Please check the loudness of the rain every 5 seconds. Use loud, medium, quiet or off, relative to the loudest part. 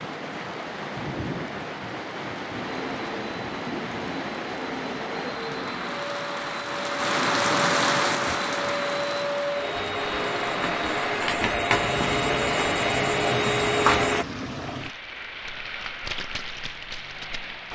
medium, loud, medium, medium.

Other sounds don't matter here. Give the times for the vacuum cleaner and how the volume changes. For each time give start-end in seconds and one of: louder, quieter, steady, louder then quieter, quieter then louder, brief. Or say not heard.
2.5-14.2 louder.